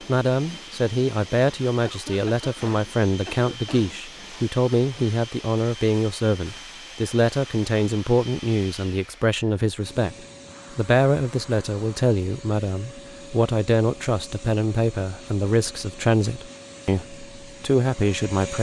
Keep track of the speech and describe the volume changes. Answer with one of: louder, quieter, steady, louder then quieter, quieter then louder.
steady.